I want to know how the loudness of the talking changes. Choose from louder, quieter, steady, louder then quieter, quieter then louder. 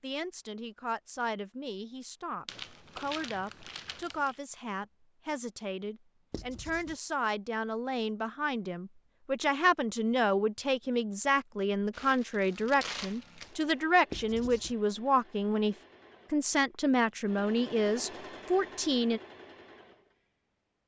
louder.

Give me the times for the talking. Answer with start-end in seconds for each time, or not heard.
0.0-19.2.